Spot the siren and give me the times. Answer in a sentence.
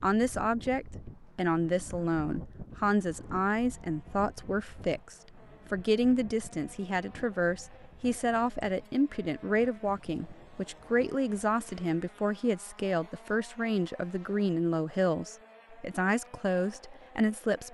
The siren can't be heard in this clip.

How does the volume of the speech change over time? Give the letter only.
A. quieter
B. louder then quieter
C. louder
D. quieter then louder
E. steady
E.